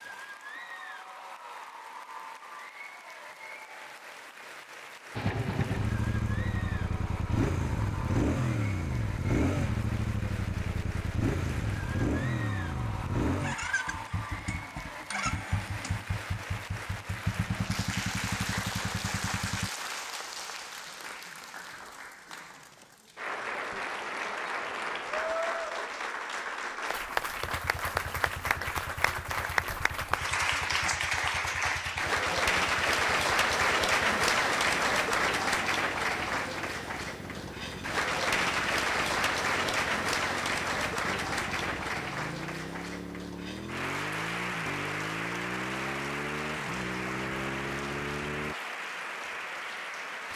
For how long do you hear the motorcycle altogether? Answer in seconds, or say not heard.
36 s.